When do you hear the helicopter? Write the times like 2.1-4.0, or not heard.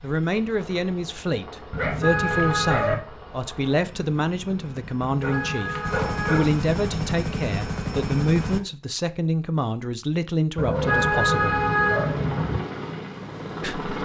0.0-8.6, 10.7-14.0.